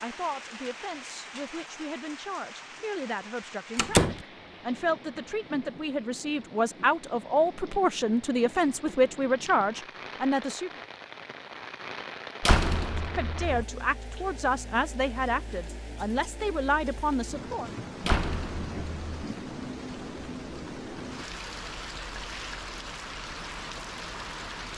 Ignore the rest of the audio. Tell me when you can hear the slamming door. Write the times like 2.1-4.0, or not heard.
3.8-4.2, 12.4-13.7, 18.0-19.2.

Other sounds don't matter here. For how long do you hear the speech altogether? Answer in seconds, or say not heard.
15 s.